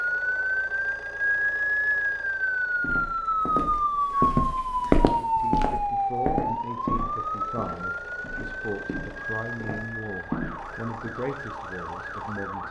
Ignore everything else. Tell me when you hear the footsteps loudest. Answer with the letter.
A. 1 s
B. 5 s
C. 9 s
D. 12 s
B.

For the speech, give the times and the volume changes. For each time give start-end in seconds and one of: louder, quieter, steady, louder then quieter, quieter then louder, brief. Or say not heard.
5.1-12.6 steady.